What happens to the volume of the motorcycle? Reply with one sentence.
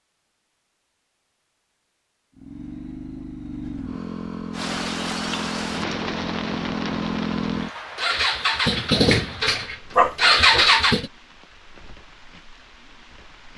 The volume of the motorcycle goes up.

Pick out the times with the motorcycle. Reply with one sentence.
You can hear the motorcycle from 2.4 to 11.1 s.